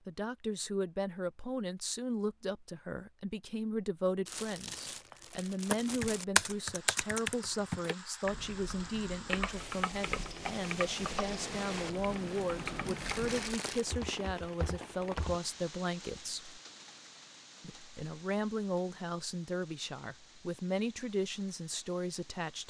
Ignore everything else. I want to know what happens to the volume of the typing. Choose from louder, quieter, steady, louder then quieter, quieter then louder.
quieter.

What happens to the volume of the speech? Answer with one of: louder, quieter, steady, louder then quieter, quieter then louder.
steady.